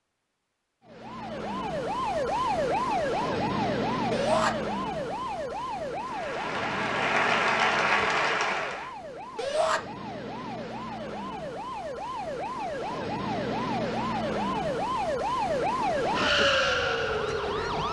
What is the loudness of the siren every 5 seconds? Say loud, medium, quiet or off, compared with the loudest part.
loud, medium, medium, loud.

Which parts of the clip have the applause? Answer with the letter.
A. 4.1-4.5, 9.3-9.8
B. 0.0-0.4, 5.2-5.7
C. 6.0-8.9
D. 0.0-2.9
C.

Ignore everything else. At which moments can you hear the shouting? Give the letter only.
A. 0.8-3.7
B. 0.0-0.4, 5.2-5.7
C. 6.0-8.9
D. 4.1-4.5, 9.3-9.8
D.